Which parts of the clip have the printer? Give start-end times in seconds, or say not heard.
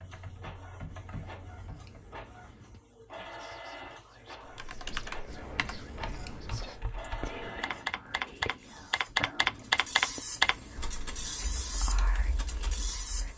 0.0-13.3.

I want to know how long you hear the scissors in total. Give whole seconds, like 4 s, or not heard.
5 s.